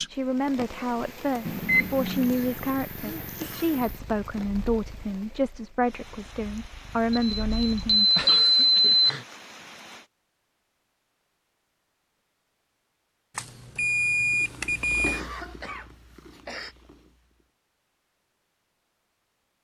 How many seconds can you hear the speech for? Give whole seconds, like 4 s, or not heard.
8 s.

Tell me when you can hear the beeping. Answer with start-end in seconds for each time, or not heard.
1.4-2.4, 7.1-9.1, 13.3-15.2.